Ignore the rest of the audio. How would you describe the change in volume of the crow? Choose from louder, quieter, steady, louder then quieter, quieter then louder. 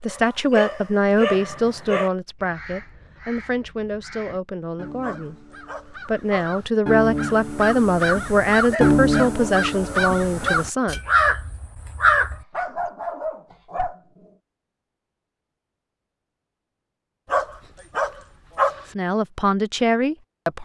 louder.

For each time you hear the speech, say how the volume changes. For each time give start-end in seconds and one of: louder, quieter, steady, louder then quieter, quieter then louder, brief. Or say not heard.
0.0-11.0 quieter then louder
18.9-20.6 brief.